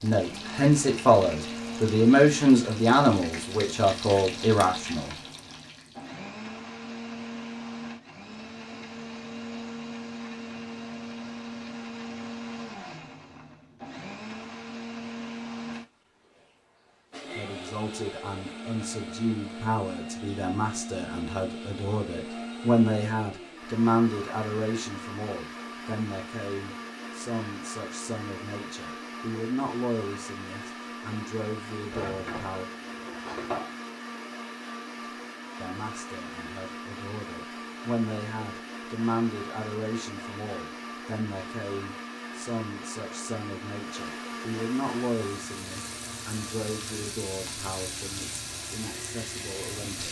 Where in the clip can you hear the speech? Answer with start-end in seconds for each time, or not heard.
0.0-5.2, 17.4-32.6, 35.6-50.0.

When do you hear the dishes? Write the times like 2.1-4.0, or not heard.
31.9-33.7.